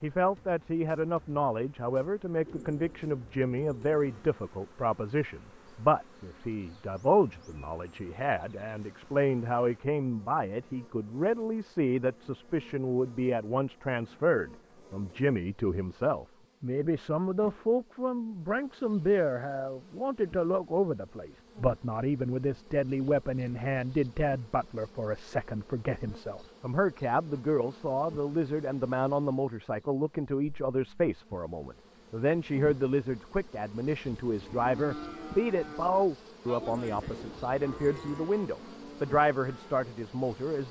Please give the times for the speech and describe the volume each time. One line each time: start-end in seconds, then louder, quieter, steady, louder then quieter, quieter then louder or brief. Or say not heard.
0.0-40.6 steady.